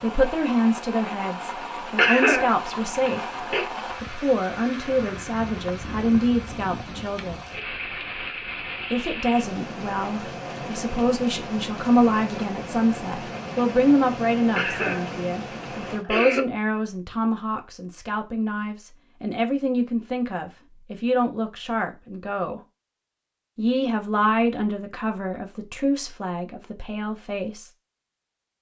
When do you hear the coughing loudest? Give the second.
2 s.